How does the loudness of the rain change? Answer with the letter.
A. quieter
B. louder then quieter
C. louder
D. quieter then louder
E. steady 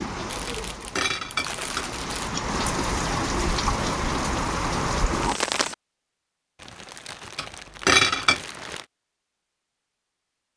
C.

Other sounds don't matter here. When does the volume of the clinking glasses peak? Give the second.
8 s.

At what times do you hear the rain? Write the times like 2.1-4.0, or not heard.
0.0-5.8.